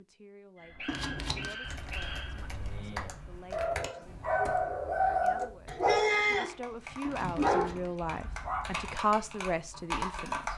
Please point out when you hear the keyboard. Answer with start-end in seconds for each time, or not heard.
1.6-10.5.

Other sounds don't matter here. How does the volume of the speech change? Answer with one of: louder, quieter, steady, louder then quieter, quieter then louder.
louder.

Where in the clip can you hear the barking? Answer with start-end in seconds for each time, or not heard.
0.6-8.9.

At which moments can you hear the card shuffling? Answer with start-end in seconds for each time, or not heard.
0.8-1.6, 7.0-8.0.